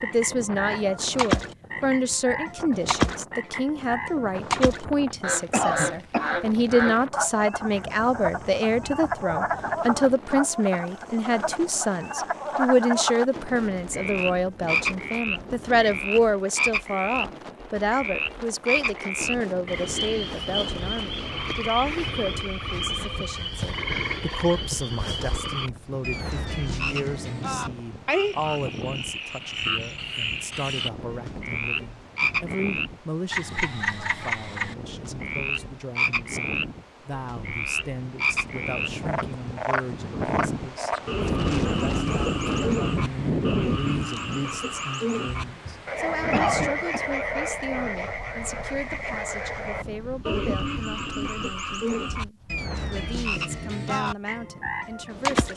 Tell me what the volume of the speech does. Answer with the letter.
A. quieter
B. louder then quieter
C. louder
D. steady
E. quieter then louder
A.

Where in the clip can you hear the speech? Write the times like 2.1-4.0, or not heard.
0.0-55.5.